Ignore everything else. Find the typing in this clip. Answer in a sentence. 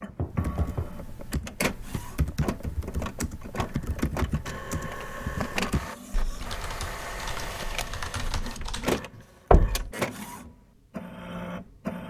You can hear the typing from 0.3 to 9.2 s.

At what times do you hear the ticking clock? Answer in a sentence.
The ticking clock can't be heard in this clip.